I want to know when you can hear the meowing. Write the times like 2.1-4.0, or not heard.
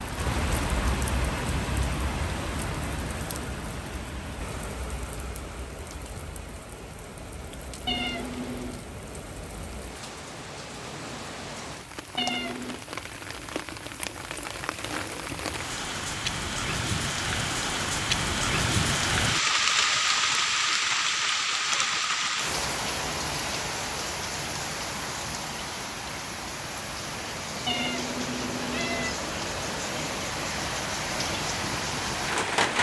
7.8-8.8, 12.2-12.8, 27.6-29.1.